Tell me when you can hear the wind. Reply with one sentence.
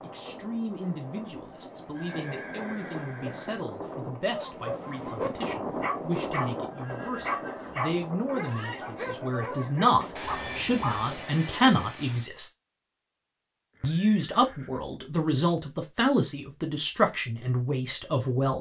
You can hear the wind from 0.0 to 11.8 s.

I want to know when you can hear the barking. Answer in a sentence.
You can hear the barking from 4.3 to 11.2 s.